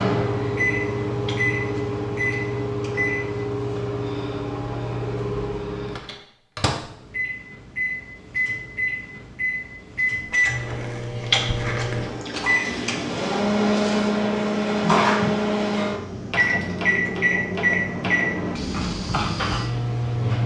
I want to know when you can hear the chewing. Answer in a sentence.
The chewing can be heard from 1.2 to 3.0 s and from 11.2 to 12.9 s.